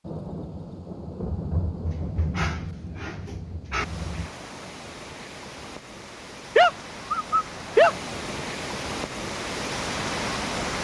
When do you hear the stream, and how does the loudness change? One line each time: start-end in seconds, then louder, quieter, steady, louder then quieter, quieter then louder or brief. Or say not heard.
3.8-10.7 louder.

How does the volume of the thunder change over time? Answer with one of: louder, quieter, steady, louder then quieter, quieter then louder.
louder then quieter.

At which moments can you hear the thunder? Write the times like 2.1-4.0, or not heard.
0.1-4.3.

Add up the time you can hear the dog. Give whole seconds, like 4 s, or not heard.
4 s.